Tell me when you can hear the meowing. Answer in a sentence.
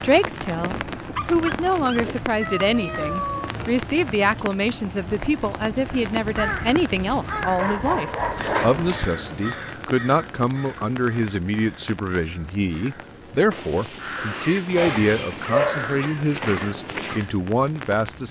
You can hear the meowing from 2.4 to 3.8 s, from 7.9 to 9.0 s and from 14.8 to 15.4 s.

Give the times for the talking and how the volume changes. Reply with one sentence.
You can hear the talking from 0.0 to 18.2 s, at a steady volume.